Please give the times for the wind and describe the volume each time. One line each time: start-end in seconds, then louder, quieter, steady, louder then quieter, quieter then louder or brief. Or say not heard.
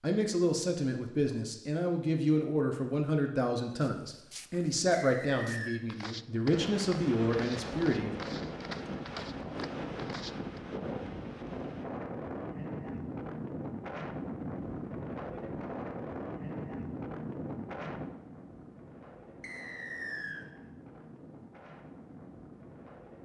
6.5-23.2 quieter.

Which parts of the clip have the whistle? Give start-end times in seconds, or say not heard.
4.9-5.8, 19.4-20.4.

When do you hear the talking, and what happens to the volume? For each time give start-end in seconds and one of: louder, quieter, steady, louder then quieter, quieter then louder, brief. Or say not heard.
0.0-8.1 steady.